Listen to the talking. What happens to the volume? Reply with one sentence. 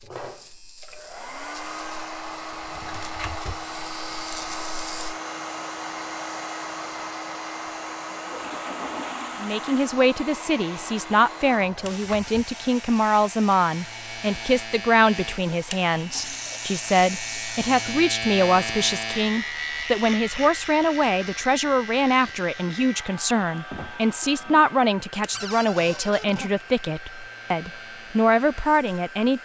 The loudness of the talking stays about the same.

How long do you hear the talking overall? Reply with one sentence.
The talking can be heard for 20 seconds in total.